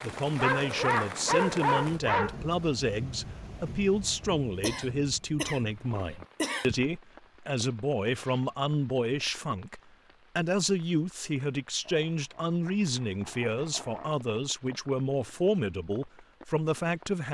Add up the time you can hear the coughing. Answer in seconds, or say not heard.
2 s.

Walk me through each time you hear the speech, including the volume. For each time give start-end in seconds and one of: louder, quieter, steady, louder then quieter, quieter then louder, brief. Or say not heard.
0.0-17.2 steady.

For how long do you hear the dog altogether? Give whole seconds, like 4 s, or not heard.
4 s.